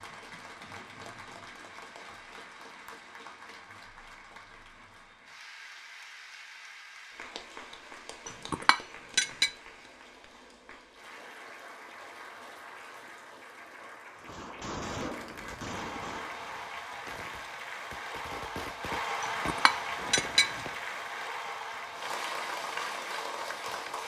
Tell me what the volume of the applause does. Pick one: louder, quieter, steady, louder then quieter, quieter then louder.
louder.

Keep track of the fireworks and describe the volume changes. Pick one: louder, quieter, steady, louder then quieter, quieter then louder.
quieter then louder.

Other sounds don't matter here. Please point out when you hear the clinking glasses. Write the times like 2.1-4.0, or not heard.
8.2-9.5, 19.2-20.5.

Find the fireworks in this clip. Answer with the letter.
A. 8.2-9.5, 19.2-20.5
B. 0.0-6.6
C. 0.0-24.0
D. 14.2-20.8
D.